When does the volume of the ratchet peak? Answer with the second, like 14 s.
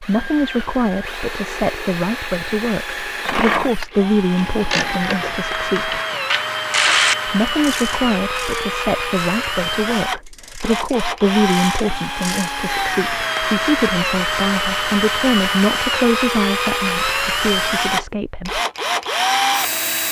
7 s.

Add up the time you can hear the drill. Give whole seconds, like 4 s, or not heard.
20 s.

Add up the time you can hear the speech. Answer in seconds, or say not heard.
17 s.